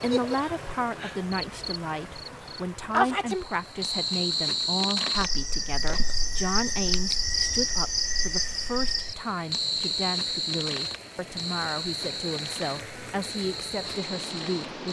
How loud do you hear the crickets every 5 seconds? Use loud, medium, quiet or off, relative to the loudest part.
loud, loud, medium.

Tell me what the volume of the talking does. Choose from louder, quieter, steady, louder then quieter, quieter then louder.
steady.